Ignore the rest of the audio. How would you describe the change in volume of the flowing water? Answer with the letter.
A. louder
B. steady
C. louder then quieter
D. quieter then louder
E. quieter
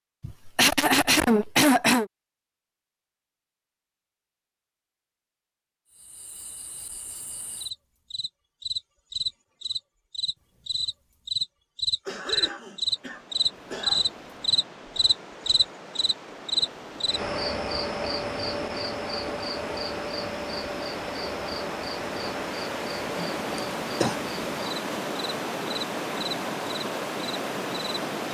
A.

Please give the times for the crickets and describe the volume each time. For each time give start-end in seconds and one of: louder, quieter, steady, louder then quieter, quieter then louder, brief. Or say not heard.
5.9-28.0 louder then quieter.